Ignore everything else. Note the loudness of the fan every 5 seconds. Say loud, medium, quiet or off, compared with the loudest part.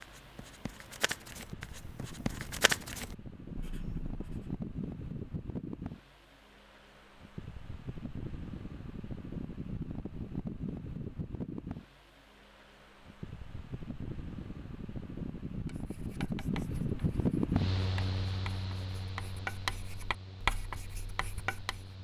medium, medium, medium, loud, quiet.